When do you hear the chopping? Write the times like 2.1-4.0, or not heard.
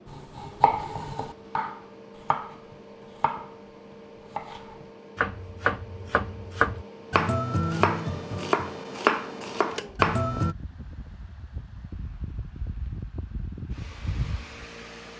0.1-10.6.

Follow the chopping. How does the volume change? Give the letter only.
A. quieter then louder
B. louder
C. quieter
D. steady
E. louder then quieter
A.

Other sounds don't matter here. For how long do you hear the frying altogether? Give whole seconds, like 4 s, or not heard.
not heard.